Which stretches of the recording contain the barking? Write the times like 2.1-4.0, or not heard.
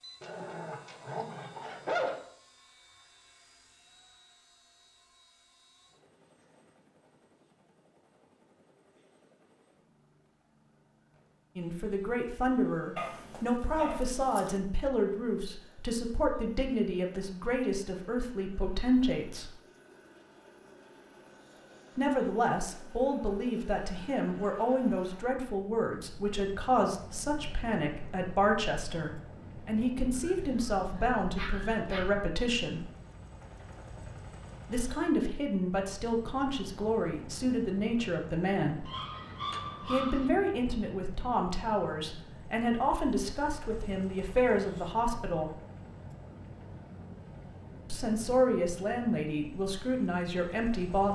0.2-2.2, 12.9-14.6, 30.2-32.1, 38.9-40.3.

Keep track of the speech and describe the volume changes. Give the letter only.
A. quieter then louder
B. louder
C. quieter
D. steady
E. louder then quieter
D.